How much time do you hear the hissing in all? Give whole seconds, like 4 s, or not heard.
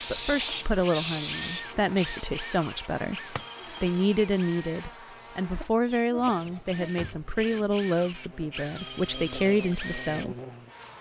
2 s.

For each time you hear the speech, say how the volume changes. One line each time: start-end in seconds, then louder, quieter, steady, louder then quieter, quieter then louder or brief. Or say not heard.
0.1-10.4 steady.